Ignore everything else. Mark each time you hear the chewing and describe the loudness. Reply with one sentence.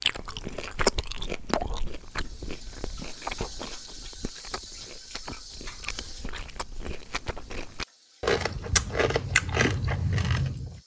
You can hear the chewing from 0.0 to 10.8 s, getting quieter then louder.